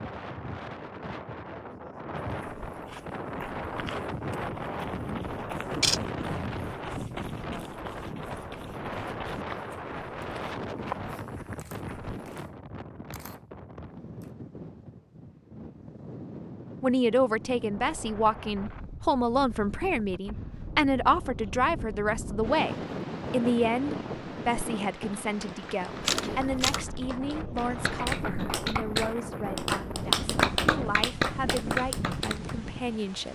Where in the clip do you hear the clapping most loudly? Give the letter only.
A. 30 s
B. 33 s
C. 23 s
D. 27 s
A.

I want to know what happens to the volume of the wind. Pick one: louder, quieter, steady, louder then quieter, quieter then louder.
quieter then louder.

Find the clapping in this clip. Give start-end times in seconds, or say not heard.
25.2-32.5.